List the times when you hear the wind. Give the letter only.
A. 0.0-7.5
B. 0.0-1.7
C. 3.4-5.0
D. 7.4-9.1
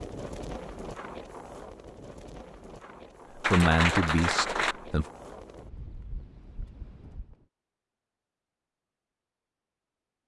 A.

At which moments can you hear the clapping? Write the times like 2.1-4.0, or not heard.
3.4-4.8.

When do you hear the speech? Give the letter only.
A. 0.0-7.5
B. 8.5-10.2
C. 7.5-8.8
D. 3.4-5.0
D.